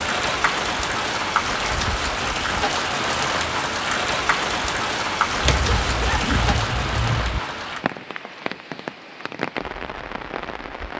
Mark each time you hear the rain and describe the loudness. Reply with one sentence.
The rain can be heard from 0.0 to 10.9 s, getting quieter.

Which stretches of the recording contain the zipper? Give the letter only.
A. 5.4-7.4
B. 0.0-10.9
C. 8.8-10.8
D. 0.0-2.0
A.